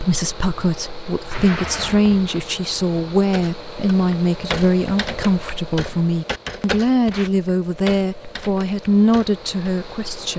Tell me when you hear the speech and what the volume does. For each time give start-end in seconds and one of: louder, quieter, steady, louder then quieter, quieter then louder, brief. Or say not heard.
0.0-10.3 steady.